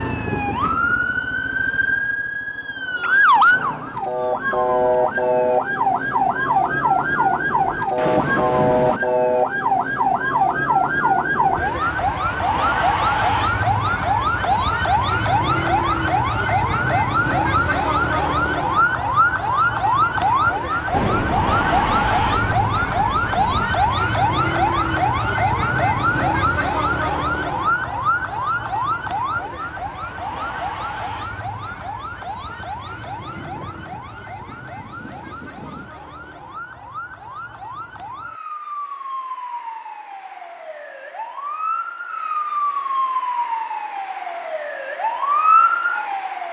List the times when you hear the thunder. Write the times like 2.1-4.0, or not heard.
8.0-9.0, 20.9-23.8, 32.5-36.0.